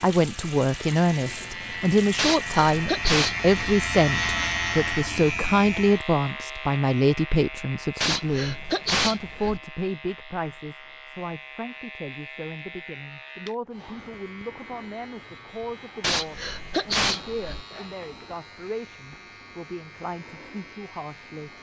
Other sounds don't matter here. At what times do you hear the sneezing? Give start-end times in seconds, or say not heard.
2.1-3.5, 8.0-9.6, 16.0-17.6.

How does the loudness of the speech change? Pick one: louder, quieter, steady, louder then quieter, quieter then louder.
quieter.